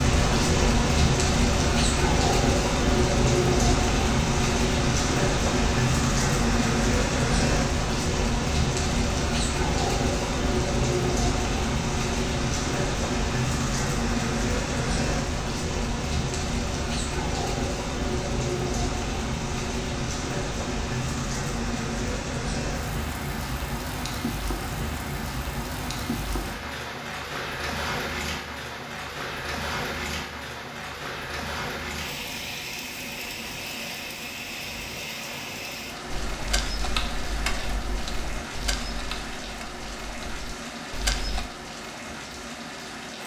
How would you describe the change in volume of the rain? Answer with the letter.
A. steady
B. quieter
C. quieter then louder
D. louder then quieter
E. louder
B.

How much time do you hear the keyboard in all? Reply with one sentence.
The keyboard can be heard for 5 seconds in total.